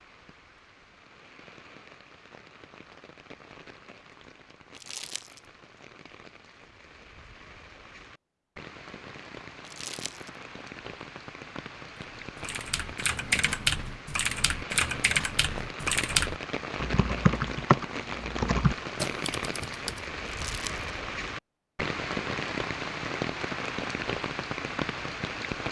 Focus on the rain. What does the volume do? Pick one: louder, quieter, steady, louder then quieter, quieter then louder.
louder.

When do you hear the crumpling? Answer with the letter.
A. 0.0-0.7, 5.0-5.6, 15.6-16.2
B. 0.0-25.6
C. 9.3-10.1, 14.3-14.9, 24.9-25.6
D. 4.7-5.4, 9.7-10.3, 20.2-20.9
D.